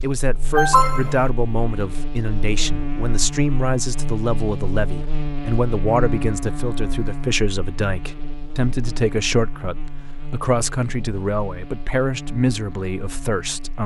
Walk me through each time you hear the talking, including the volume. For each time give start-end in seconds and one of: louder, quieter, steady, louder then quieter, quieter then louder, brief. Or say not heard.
0.0-13.8 steady.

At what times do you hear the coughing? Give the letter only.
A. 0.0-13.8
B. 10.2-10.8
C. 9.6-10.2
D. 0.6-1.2
D.